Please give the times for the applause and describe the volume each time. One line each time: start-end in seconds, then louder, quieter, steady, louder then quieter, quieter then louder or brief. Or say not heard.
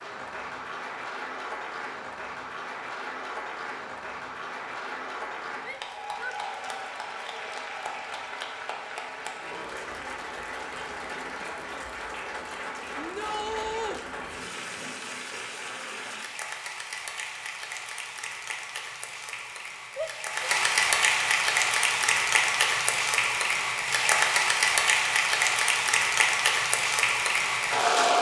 0.0-28.1 louder.